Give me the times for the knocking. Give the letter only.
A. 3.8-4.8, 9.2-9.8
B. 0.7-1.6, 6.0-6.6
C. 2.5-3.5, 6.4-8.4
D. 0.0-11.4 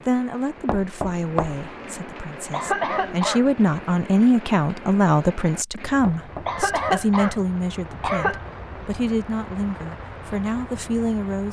B.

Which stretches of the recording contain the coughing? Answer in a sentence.
The coughing can be heard from 2.5 to 3.5 s and from 6.4 to 8.4 s.